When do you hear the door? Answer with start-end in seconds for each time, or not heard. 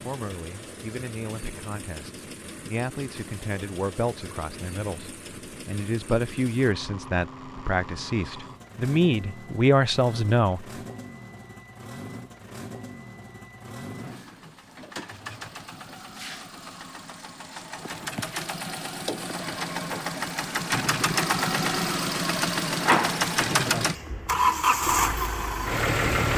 not heard.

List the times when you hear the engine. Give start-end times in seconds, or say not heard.
0.0-26.3.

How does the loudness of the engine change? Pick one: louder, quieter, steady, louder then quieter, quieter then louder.
louder.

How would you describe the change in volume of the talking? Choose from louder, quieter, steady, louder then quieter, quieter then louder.
louder.